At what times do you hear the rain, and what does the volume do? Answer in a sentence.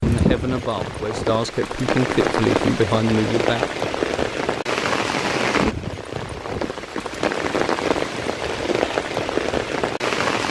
You can hear the rain from 0.0 to 10.4 s, at a steady volume.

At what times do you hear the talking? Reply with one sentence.
The talking can be heard from 0.0 to 3.7 s.